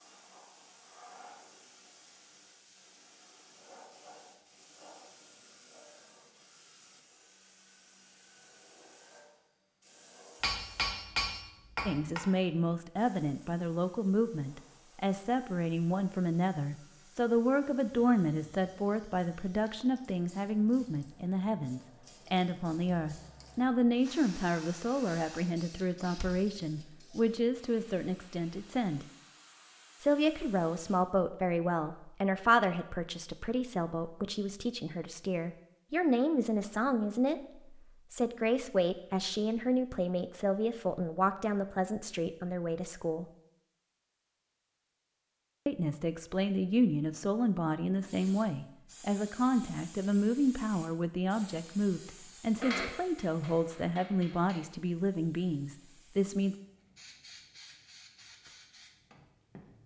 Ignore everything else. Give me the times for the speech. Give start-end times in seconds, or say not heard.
11.8-29.1, 30.0-43.2, 45.6-56.5.